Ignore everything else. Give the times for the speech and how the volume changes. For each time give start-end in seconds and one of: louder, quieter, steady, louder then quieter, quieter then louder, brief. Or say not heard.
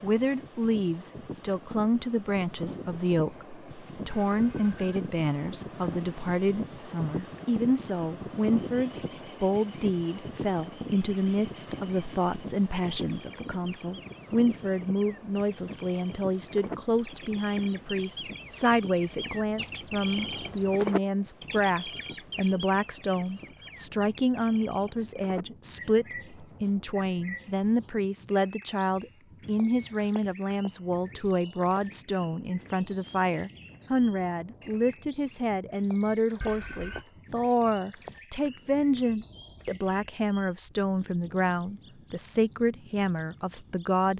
0.0-44.1 steady.